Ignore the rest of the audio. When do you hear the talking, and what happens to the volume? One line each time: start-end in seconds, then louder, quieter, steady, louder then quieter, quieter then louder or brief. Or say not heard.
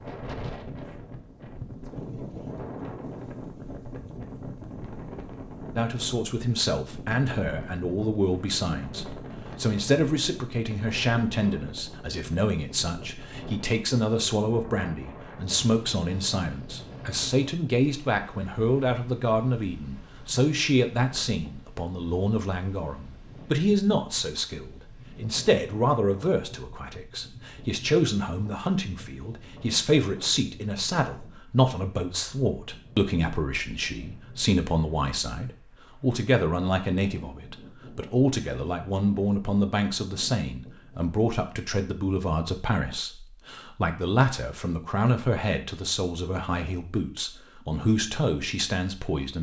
5.8-49.3 steady.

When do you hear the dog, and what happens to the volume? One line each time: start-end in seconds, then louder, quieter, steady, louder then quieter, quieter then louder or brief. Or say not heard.
not heard.